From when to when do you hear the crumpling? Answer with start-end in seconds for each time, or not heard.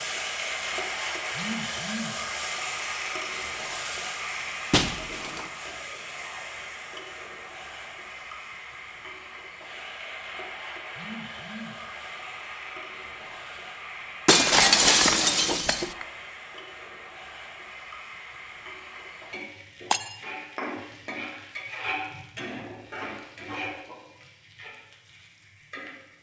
14.3-16.1.